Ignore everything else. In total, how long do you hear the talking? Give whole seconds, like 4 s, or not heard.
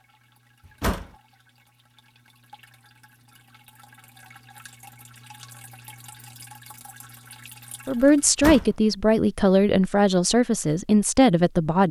4 s.